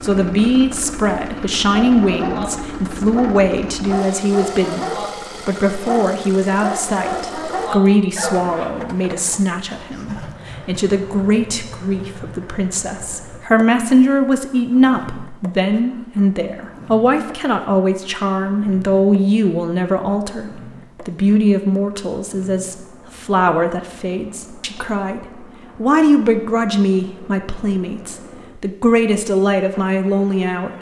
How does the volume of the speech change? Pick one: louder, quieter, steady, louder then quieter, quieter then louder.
steady.